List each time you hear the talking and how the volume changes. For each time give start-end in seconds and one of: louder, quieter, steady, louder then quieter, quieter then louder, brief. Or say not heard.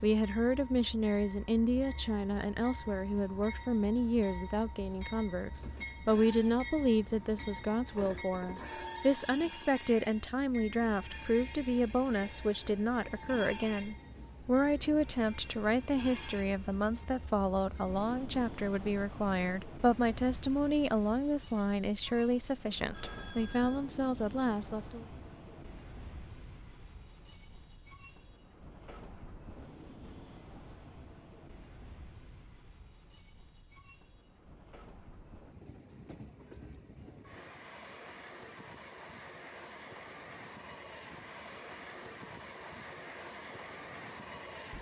0.0-25.1 steady.